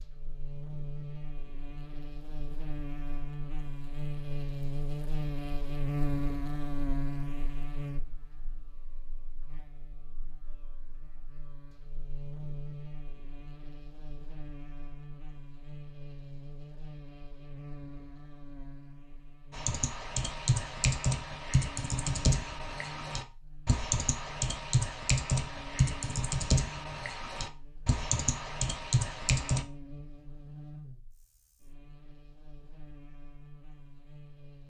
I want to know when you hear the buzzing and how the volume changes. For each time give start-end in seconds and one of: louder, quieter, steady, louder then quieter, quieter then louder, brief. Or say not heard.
0.0-34.6 quieter.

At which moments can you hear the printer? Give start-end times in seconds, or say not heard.
not heard.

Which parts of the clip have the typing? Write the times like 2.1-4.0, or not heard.
19.5-29.6.